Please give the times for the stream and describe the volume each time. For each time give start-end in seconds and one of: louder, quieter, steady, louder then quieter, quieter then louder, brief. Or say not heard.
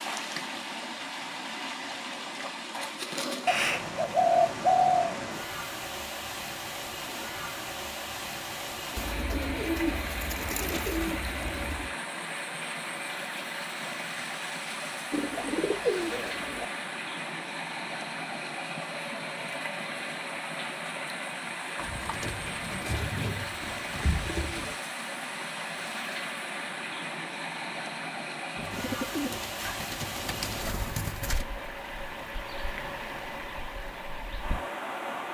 0.0-35.2 steady.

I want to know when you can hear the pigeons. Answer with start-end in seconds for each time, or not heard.
3.5-5.2, 8.9-11.9, 15.1-16.6, 21.8-24.8, 28.6-31.4.